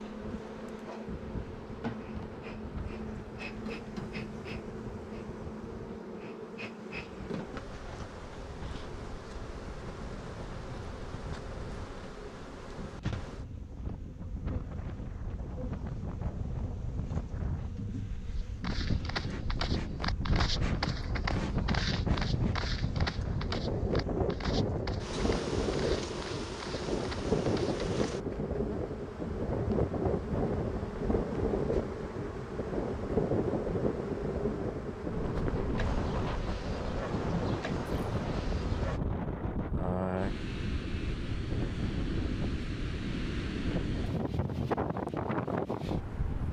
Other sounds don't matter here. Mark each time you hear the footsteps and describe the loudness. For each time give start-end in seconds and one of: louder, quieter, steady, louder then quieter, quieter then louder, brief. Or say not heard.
18.4-28.5 quieter.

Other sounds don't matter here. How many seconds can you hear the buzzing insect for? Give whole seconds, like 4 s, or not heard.
39 s.